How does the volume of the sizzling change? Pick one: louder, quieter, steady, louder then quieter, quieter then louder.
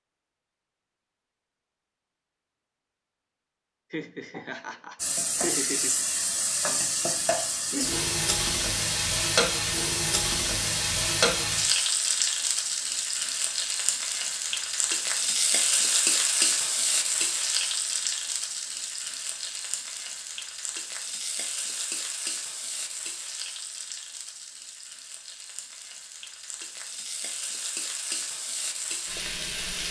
quieter.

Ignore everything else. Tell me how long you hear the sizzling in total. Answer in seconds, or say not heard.
25 s.